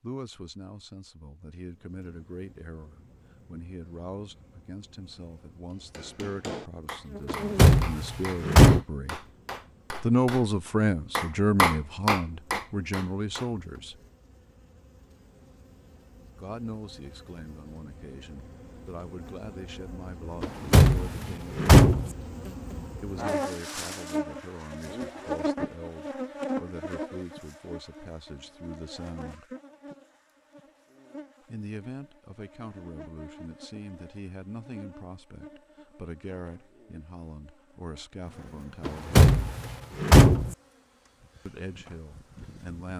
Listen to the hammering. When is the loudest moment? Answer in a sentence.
The volume of the hammering peaks at 12 seconds.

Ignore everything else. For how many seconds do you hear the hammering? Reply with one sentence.
You can hear the hammering for 8 seconds altogether.